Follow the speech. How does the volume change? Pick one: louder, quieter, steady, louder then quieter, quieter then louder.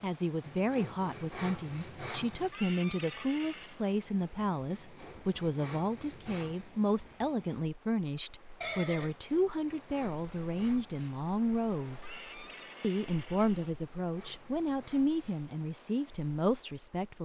steady.